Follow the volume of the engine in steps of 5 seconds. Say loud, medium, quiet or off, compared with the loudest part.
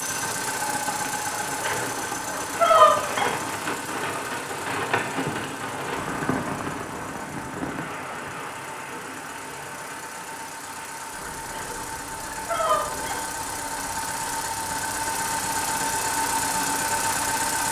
medium, quiet, medium, loud.